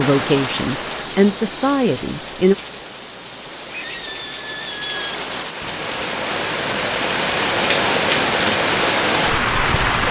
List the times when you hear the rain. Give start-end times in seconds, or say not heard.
0.0-10.0.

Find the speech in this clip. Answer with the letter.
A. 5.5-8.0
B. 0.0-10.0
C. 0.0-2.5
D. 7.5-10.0
C.